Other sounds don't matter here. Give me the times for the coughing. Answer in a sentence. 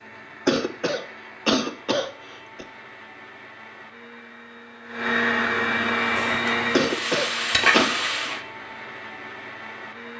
You can hear the coughing from 0.5 to 2.6 s and from 6.7 to 8.0 s.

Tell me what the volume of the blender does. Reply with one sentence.
The loudness of the blender goes up, then down.